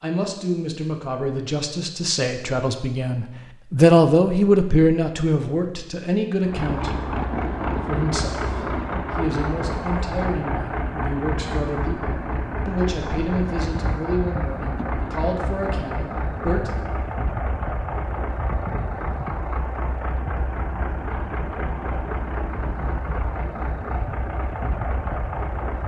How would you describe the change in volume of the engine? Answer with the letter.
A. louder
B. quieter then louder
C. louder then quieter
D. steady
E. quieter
D.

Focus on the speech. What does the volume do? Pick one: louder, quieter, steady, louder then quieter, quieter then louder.
louder then quieter.